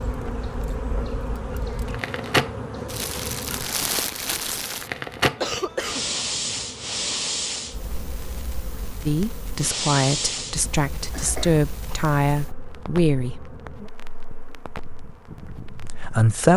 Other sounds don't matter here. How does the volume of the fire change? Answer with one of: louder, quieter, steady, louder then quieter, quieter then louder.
quieter.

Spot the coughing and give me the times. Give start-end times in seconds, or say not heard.
5.3-6.2, 11.1-11.9.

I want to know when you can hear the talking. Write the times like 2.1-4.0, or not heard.
9.1-13.3, 15.3-16.5.